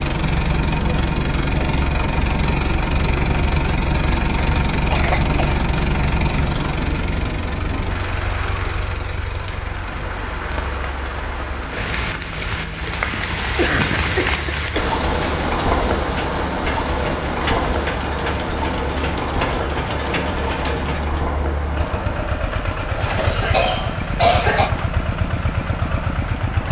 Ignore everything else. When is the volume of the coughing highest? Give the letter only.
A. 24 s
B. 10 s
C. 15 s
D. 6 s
A.